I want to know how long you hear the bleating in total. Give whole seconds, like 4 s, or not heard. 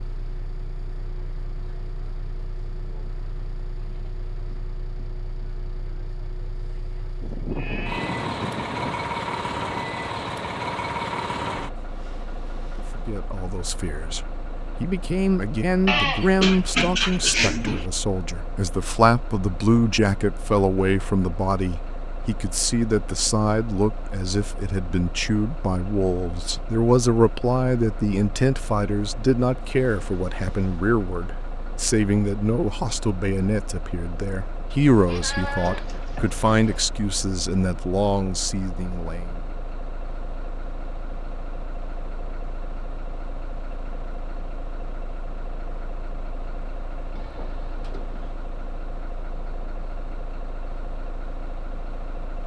7 s.